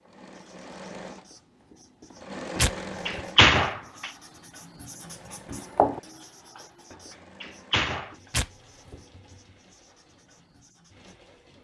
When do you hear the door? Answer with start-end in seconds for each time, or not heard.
2.5-4.1, 6.9-8.2.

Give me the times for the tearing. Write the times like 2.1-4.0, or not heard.
2.5-3.2, 8.3-8.9.